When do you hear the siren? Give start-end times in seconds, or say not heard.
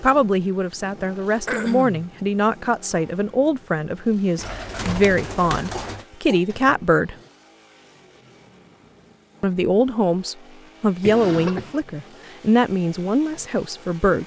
not heard.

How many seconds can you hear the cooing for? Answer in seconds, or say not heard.
2 s.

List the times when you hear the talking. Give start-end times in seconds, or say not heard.
0.0-7.2, 9.4-14.2.